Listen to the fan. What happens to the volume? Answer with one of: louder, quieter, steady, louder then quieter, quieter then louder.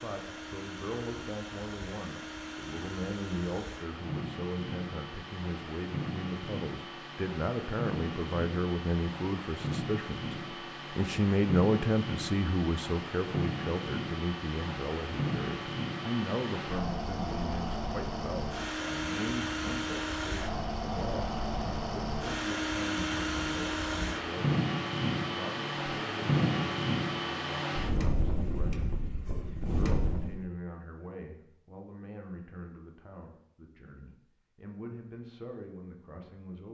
louder.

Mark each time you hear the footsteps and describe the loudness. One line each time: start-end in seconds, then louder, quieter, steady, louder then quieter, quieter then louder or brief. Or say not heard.
not heard.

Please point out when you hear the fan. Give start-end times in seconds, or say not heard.
0.0-30.4.